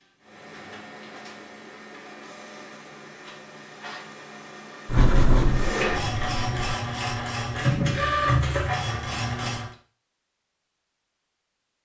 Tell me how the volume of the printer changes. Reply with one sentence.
The loudness of the printer goes up.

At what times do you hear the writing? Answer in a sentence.
You can hear the writing from 4.8 to 6.8 s.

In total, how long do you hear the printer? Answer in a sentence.
You can hear the printer for 10 seconds altogether.